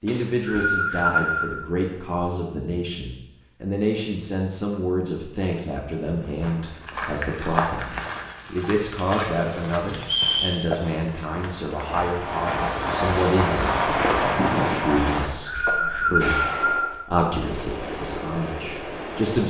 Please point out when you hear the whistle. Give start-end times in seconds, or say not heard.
0.1-1.6, 10.0-10.6, 15.1-16.9.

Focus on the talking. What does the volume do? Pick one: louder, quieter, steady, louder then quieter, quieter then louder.
steady.